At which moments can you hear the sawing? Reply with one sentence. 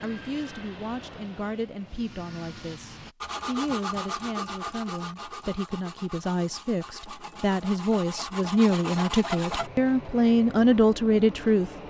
The sawing can be heard from 3.2 to 9.7 s.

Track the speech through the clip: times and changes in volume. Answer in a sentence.
You can hear the speech from 0.0 to 11.7 s, getting louder.